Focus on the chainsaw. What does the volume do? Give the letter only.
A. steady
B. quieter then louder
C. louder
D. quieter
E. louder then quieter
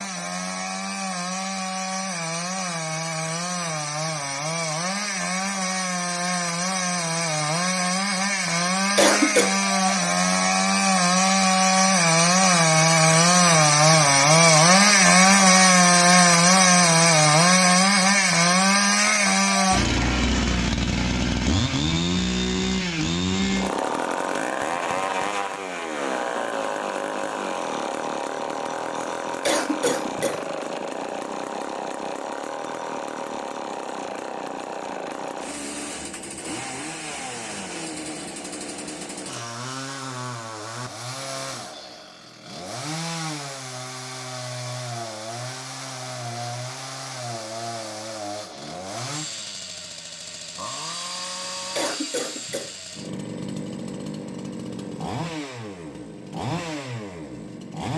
E.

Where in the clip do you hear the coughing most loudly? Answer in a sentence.
The loudest moment of the coughing is at 9 seconds.